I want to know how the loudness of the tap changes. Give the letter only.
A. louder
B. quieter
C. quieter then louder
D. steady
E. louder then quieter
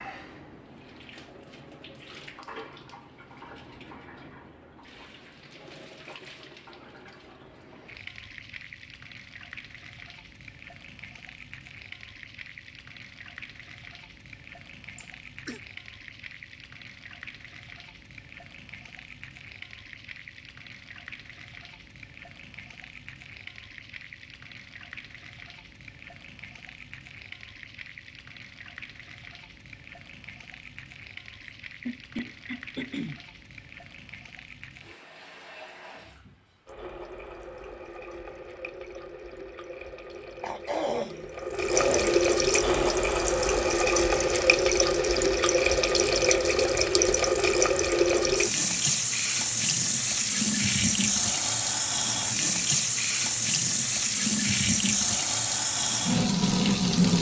A.